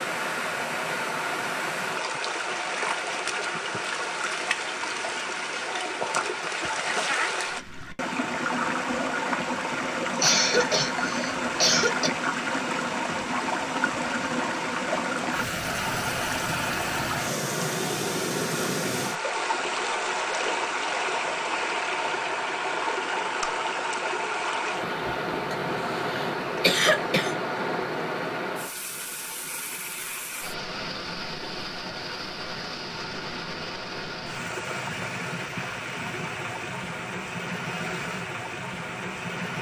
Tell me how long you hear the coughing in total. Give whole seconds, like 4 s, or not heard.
4 s.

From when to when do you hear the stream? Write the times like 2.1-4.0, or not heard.
0.0-39.5.